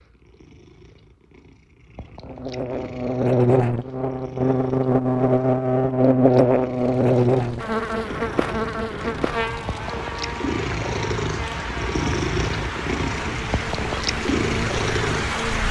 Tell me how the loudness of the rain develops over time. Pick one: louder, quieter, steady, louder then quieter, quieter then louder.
louder.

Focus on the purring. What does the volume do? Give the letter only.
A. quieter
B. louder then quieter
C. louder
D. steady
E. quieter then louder
C.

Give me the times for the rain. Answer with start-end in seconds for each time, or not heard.
6.8-15.6.